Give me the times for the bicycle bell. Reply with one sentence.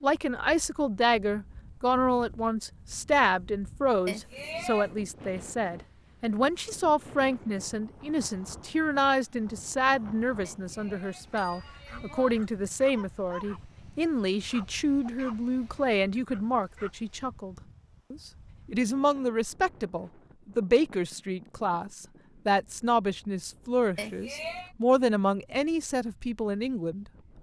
The bicycle bell can be heard from 4.0 to 4.9 s, from 10.4 to 12.3 s and from 23.9 to 24.7 s.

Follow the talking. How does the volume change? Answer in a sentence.
The volume of the talking stays about the same.